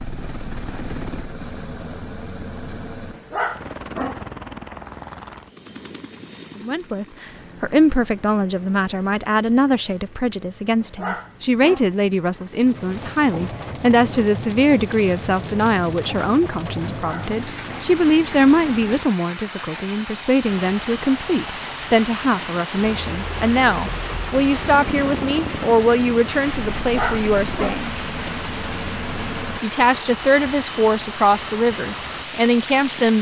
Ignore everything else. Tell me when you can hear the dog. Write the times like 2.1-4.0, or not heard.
3.0-4.2, 10.7-11.9, 16.9-17.9, 26.8-27.9.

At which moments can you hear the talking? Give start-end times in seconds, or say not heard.
6.5-27.9, 29.6-33.1.